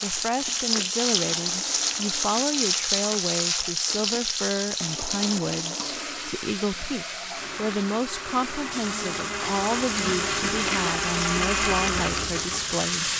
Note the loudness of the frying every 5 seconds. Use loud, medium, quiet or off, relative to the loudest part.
loud, medium, loud.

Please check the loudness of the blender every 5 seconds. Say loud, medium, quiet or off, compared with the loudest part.
quiet, medium, loud.